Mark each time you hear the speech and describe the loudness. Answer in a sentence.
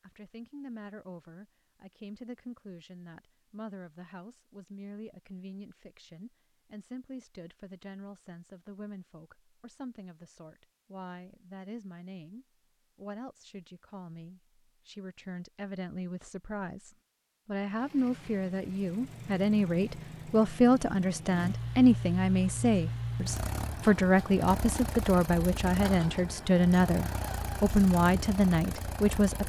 You can hear the speech from 0.0 to 29.4 s, getting louder.